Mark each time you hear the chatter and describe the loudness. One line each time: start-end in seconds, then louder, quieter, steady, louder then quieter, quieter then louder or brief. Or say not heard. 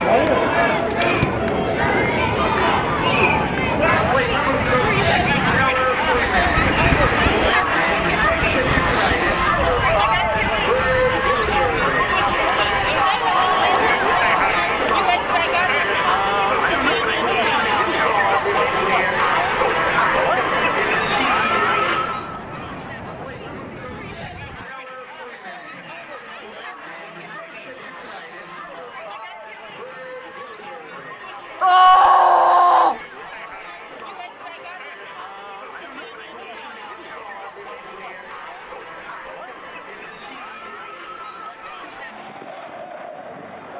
0.0-43.7 quieter.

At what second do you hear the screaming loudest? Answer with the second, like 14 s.
32 s.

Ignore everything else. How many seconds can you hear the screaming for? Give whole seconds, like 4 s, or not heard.
3 s.